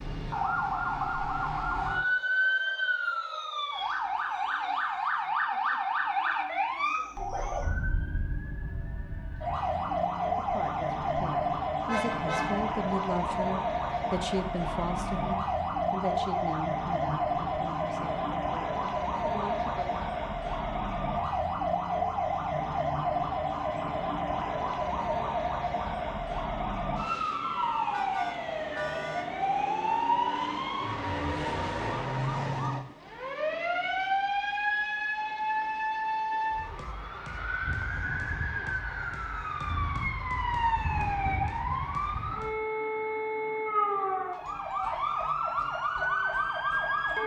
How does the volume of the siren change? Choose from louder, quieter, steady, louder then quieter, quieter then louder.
steady.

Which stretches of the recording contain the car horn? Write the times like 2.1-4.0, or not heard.
11.8-12.8, 27.9-29.3, 41.0-41.6.